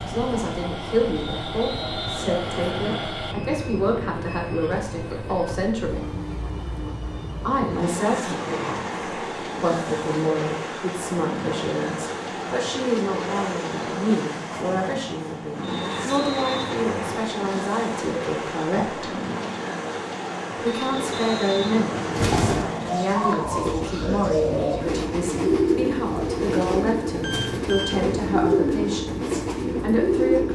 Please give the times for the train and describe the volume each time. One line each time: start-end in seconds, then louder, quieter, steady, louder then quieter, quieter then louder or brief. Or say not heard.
0.0-30.5 steady.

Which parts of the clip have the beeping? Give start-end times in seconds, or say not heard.
27.2-28.0.